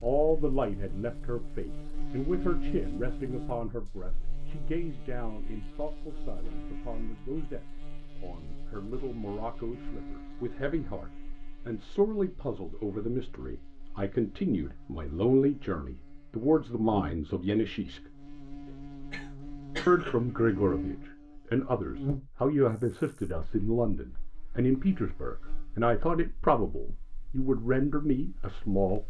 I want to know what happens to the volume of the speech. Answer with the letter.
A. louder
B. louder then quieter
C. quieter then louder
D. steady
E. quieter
C.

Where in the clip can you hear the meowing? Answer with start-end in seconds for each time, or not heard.
not heard.